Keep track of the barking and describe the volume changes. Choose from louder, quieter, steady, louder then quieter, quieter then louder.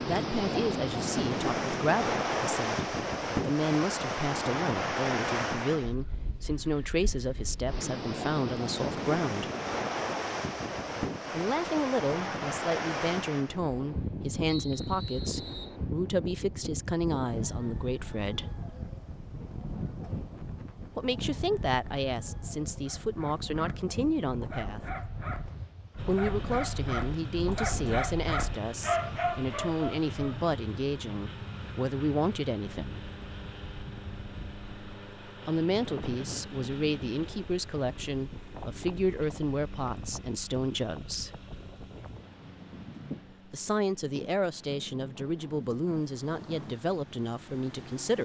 louder.